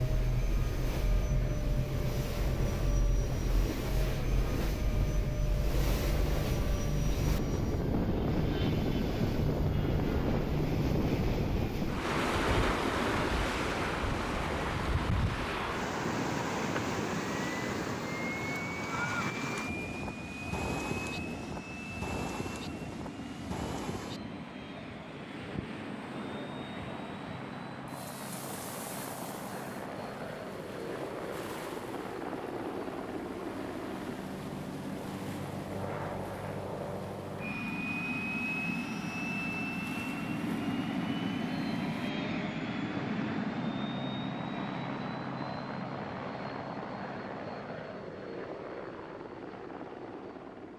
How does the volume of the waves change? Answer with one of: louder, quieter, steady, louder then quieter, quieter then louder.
quieter.